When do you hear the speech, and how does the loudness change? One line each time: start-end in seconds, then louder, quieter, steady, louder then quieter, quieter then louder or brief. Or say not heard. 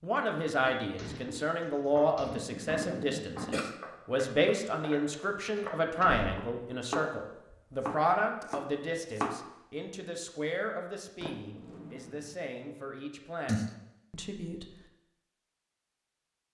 0.0-14.7 quieter.